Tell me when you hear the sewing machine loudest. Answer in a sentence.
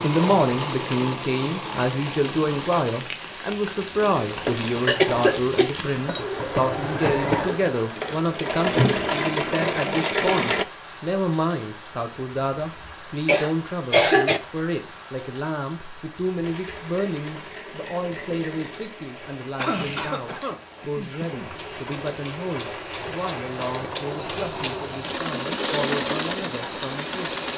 The loudest moment of the sewing machine is at 9 seconds.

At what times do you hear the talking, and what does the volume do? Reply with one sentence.
You can hear the talking from 0.0 to 27.4 s, getting quieter.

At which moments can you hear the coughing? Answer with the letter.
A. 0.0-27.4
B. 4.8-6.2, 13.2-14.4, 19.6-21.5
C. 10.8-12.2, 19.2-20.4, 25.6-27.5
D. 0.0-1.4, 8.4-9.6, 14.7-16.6
B.